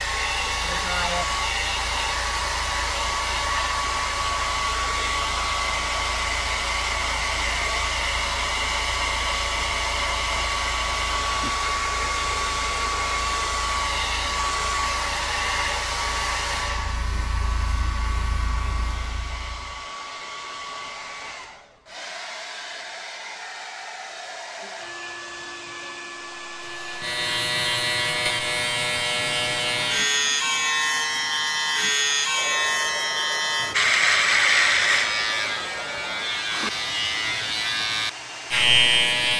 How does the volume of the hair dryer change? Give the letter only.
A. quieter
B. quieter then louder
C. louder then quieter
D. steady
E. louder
A.